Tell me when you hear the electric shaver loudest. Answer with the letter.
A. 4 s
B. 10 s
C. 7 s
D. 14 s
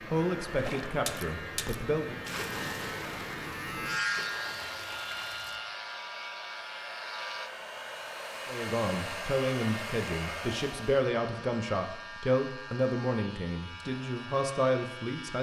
A.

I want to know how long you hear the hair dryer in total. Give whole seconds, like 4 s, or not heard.
11 s.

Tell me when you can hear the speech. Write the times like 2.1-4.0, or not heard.
0.1-2.1, 8.4-15.3.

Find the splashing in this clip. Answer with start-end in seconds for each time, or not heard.
0.6-5.6.